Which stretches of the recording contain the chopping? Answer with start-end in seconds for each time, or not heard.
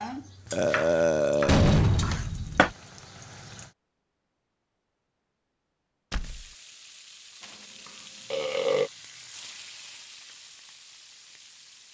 0.0-2.7.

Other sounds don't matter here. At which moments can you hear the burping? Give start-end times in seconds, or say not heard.
0.5-1.8, 7.4-8.9.